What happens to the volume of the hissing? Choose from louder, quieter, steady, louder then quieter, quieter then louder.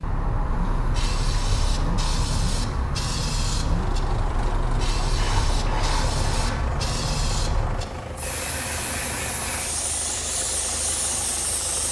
steady.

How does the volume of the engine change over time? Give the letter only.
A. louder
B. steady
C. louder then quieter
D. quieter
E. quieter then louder
B.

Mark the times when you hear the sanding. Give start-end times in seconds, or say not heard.
5.2-6.8.